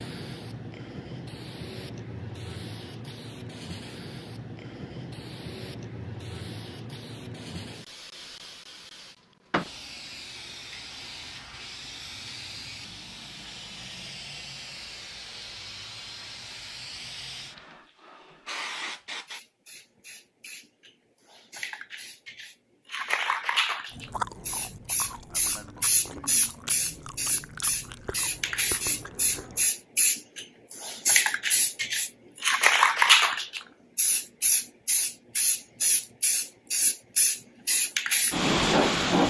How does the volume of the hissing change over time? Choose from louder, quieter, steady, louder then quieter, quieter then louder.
louder.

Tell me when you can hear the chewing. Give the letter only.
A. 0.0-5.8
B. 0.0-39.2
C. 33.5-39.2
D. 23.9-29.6
D.